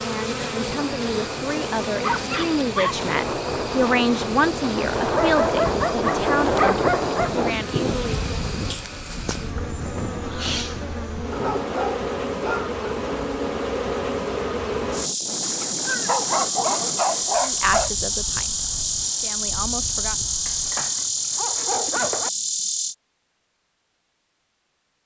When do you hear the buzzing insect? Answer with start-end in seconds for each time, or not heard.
0.0-22.9.